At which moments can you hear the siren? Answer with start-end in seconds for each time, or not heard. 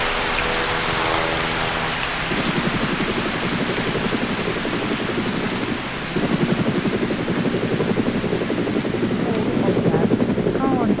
not heard.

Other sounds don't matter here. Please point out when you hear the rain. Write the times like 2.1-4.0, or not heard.
0.0-10.9.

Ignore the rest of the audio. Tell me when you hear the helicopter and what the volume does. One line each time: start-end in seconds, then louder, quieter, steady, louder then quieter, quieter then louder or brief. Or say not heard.
0.0-10.9 louder.